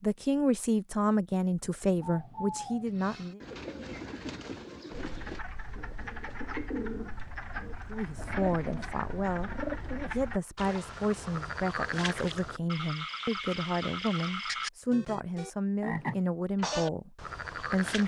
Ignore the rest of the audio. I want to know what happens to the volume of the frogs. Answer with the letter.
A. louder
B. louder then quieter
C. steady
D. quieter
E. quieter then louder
A.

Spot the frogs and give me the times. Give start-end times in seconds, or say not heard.
4.9-18.0.